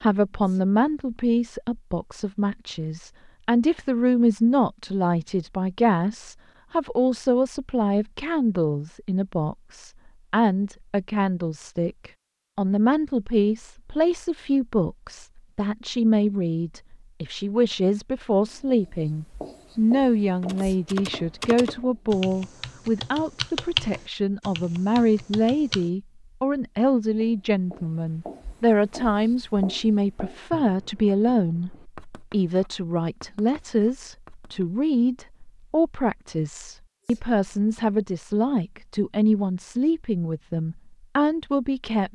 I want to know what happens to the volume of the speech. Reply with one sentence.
The loudness of the speech stays about the same.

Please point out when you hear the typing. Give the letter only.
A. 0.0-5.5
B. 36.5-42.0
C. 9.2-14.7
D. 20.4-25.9
D.